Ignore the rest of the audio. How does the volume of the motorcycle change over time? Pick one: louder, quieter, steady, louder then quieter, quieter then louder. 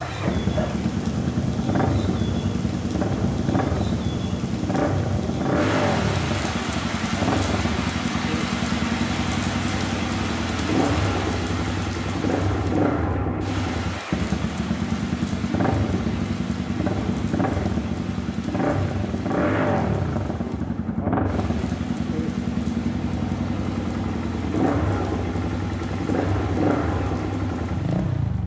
steady.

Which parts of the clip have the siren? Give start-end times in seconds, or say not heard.
not heard.